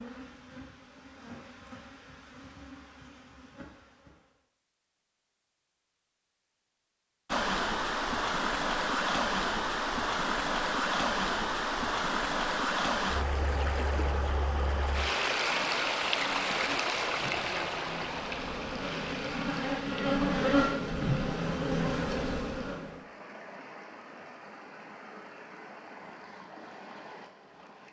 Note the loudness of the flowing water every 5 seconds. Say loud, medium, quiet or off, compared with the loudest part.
off, loud, loud, loud, quiet, quiet.